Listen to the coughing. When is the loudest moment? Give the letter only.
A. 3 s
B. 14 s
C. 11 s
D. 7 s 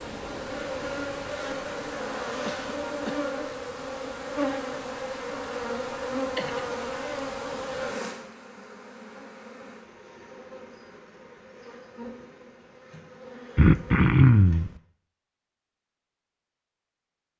B.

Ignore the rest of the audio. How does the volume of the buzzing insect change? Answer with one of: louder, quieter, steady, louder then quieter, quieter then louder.
quieter.